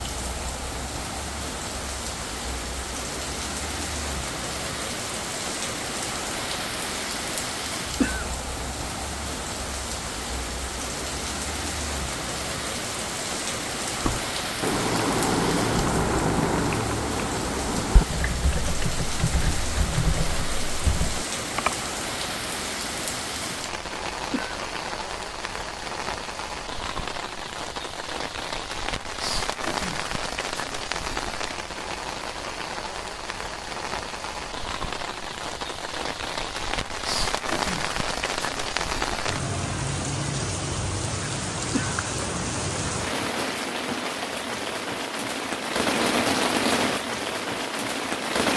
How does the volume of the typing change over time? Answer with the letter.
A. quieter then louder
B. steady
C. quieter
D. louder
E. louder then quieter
C.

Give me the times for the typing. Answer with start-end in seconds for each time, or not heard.
14.0-21.8.